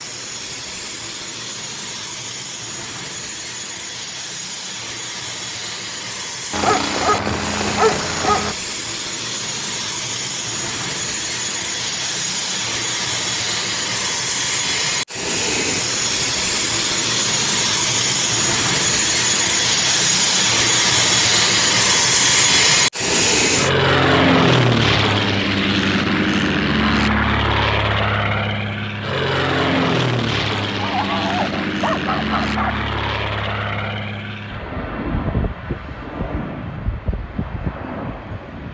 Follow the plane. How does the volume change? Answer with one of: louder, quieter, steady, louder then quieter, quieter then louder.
louder then quieter.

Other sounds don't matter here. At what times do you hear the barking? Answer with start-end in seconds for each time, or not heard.
6.5-8.6, 30.8-32.8.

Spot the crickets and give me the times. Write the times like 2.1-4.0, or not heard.
not heard.